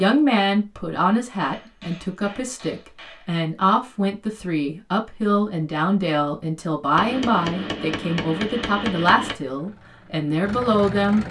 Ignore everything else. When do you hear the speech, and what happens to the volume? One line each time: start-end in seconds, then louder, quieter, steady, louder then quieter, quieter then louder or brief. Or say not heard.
0.0-11.2 steady.